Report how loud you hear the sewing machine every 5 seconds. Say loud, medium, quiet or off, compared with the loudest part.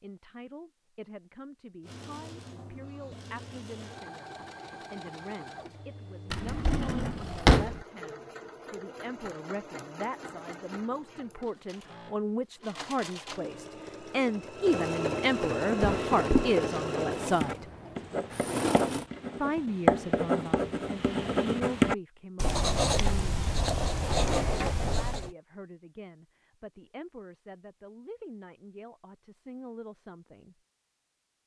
quiet, quiet, medium, loud, off, off, off.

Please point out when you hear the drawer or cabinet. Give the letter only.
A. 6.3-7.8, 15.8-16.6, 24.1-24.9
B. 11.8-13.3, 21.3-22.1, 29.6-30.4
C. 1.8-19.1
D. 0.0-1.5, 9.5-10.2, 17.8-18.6
A.